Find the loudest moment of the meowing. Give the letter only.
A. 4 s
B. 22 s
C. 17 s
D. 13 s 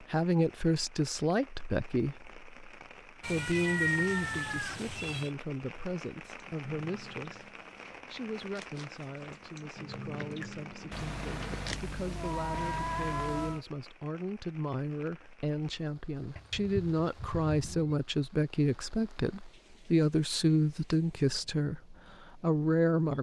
A.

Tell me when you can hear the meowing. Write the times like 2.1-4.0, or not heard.
3.2-5.3, 10.9-13.6, 16.4-17.9.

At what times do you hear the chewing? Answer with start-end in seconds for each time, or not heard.
6.3-11.8.